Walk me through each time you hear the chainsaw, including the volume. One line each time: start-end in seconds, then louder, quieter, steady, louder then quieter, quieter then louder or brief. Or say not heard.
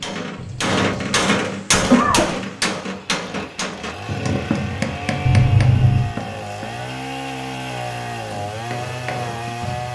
0.2-9.9 louder.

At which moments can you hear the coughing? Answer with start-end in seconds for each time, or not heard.
0.3-2.4, 5.2-6.2.